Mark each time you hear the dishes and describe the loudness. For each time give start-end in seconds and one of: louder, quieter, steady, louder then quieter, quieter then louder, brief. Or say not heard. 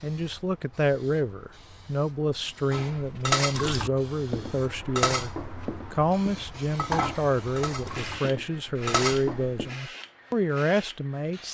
2.7-9.7 quieter then louder.